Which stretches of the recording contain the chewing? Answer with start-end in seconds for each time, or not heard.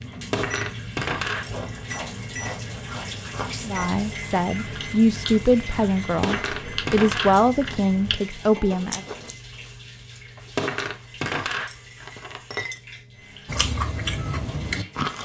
1.3-9.3, 13.4-15.2.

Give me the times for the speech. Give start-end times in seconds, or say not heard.
3.6-9.1.